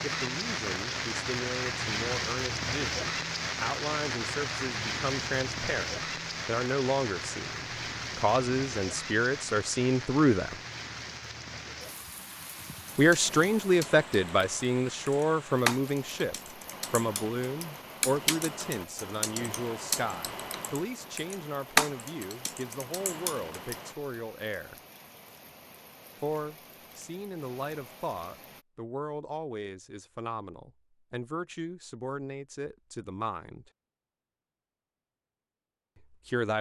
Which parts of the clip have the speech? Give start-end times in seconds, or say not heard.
0.0-10.6, 12.9-24.8, 26.2-33.7, 36.0-36.5.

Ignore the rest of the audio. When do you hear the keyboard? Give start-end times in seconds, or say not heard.
12.8-23.9.